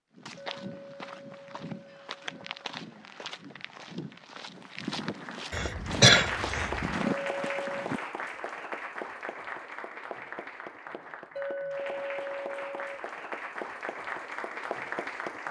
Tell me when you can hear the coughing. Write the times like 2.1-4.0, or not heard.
5.5-7.0.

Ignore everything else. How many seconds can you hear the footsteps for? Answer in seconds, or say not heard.
8 s.